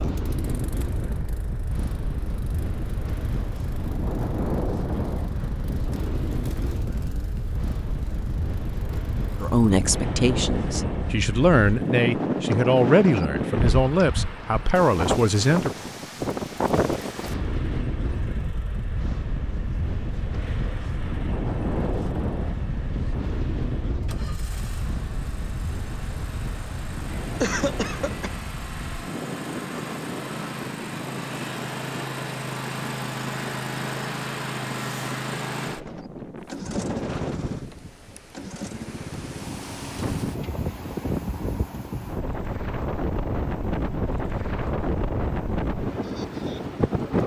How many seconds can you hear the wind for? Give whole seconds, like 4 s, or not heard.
47 s.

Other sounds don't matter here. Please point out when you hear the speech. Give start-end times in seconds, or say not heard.
9.3-15.7.